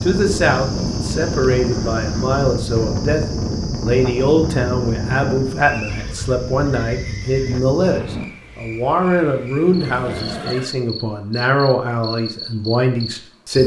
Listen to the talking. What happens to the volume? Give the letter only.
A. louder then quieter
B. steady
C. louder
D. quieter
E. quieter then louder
B.